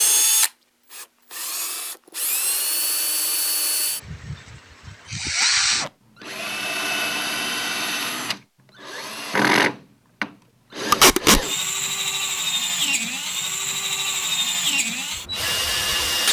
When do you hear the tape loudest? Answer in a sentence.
The loudest moment of the tape is at 11 seconds.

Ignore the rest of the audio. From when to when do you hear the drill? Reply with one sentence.
The drill can be heard from 0.0 to 16.2 s.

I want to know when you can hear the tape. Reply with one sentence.
The tape can be heard from 5.3 to 5.9 s and from 10.9 to 11.4 s.